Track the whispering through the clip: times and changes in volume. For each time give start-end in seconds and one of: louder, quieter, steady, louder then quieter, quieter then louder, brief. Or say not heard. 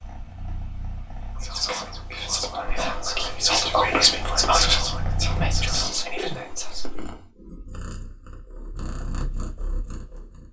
1.4-6.8 louder then quieter.